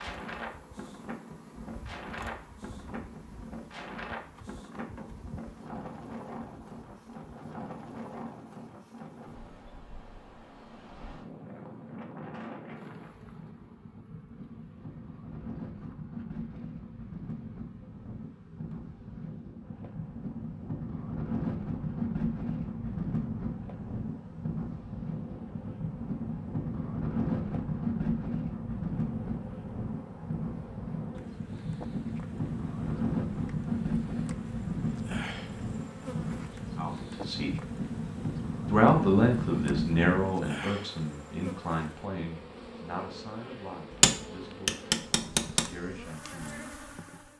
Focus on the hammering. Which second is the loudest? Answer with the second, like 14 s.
44 s.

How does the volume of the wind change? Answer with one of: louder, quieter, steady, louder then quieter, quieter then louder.
louder.